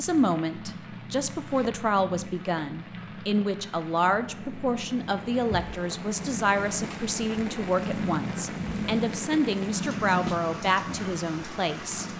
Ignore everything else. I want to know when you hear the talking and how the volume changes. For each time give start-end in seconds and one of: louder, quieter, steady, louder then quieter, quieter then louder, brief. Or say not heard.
0.0-12.1 steady.